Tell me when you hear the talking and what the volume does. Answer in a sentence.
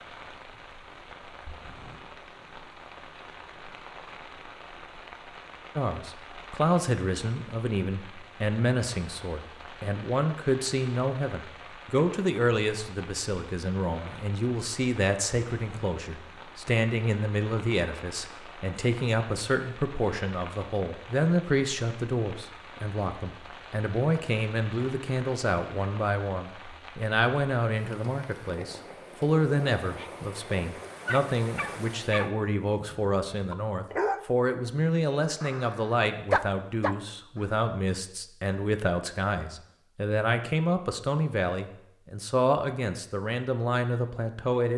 You can hear the talking from 5.8 to 44.7 s, at a steady volume.